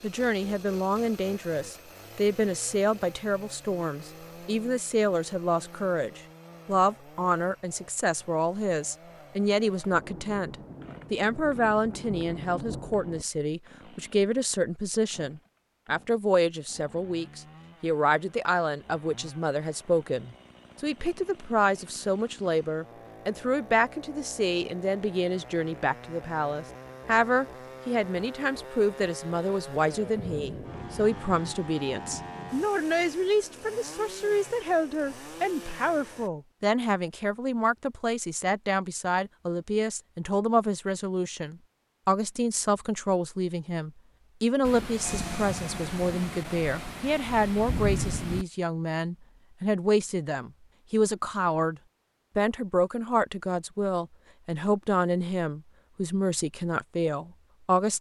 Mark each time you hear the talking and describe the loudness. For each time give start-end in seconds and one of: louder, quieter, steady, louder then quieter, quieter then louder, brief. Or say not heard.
0.0-57.9 steady.